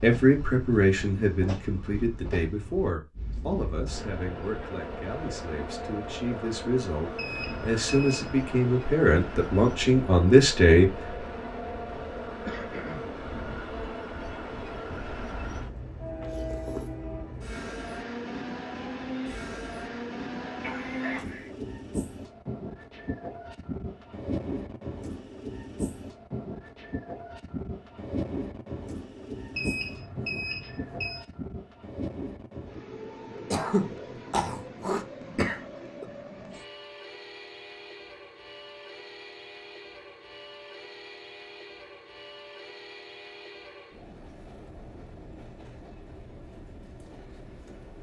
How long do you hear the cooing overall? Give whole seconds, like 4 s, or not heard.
not heard.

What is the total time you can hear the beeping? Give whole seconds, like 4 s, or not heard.
3 s.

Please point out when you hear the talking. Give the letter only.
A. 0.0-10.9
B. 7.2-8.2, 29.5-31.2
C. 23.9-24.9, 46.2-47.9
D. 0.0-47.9
A.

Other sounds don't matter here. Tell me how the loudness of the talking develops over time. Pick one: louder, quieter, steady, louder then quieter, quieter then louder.
quieter then louder.